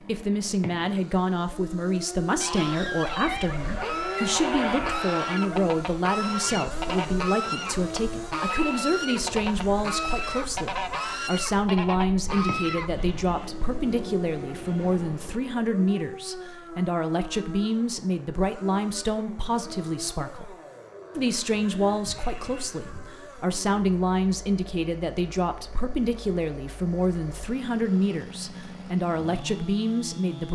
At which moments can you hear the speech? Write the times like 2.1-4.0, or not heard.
0.1-20.6, 21.1-30.5.